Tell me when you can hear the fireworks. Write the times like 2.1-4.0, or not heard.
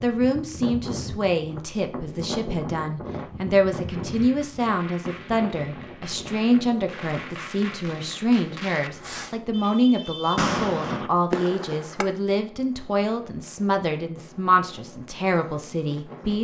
3.8-12.1.